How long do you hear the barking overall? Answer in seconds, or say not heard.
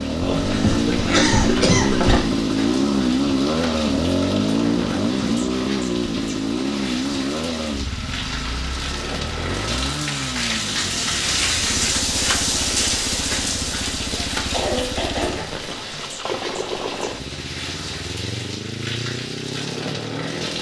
not heard.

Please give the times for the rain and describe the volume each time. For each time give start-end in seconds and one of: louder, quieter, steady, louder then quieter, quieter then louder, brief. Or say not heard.
0.0-20.5 louder then quieter.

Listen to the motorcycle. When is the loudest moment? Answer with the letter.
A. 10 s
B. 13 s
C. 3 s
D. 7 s
C.